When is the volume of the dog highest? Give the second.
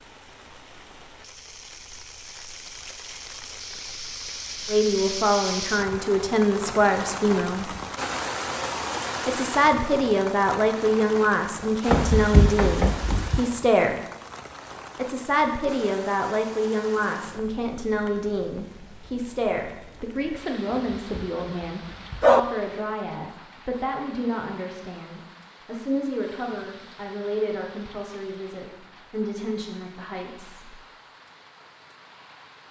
22 s.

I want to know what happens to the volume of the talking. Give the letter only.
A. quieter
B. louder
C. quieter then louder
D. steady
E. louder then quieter
A.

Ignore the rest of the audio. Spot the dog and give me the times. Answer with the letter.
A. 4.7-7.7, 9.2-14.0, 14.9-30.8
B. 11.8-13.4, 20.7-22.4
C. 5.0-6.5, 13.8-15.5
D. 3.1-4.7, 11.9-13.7
B.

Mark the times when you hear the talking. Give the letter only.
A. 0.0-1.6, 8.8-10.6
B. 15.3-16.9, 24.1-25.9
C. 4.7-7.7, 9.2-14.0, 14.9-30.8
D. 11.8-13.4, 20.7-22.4
C.